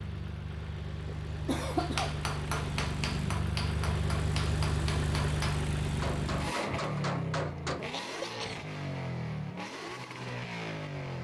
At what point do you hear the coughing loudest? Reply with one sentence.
The volume of the coughing peaks at 2 seconds.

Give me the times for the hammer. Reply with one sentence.
The hammer can be heard from 1.8 to 7.8 s.